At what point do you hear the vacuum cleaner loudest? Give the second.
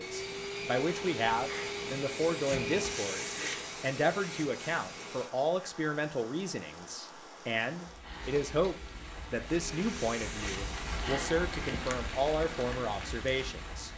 3 s.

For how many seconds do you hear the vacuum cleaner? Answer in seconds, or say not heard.
8 s.